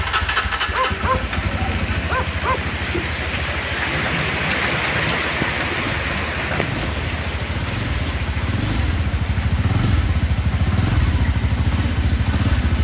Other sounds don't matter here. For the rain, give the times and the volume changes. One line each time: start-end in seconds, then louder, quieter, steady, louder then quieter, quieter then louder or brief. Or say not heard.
0.1-12.7 louder then quieter.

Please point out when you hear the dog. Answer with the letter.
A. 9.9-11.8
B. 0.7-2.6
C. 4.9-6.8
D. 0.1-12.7
B.